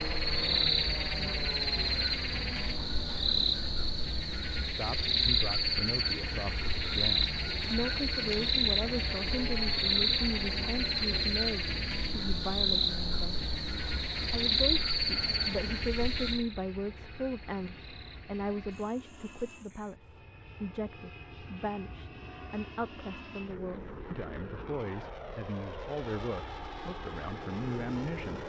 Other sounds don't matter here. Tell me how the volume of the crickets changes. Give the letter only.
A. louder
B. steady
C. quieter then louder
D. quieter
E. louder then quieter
D.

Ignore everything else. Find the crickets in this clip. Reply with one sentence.
You can hear the crickets from 0.0 to 19.9 s.